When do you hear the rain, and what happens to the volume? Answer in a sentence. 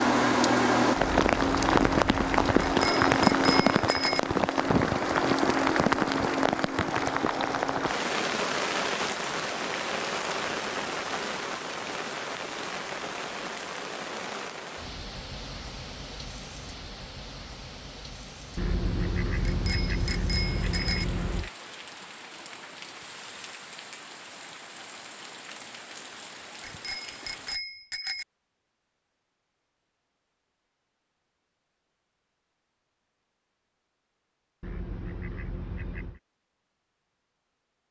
You can hear the rain from 0.0 to 27.6 s, getting quieter.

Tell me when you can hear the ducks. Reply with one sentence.
You can hear the ducks from 0.9 to 2.8 s, from 18.6 to 21.5 s and from 34.6 to 36.2 s.